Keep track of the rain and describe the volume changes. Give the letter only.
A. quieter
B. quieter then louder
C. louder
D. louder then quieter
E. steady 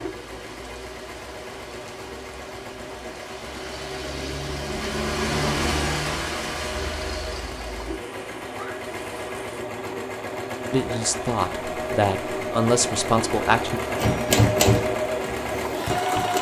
D.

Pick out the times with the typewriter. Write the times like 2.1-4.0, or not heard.
13.9-16.3.